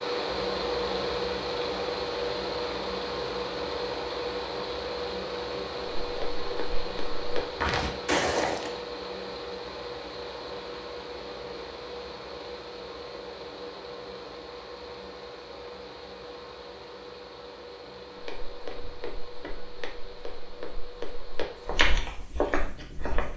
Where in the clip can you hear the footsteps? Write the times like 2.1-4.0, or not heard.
6.1-8.7, 18.2-23.3.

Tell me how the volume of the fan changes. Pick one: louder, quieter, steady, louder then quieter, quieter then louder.
quieter.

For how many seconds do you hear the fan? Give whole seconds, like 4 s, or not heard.
23 s.